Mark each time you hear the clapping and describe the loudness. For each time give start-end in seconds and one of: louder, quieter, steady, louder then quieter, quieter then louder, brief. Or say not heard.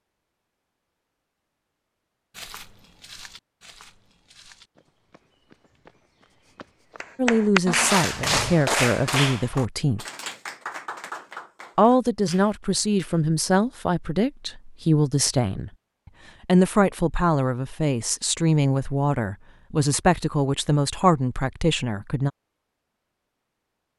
7.0-13.2 quieter.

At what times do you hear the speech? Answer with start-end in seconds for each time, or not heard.
7.2-10.0, 11.8-15.7, 16.4-22.3.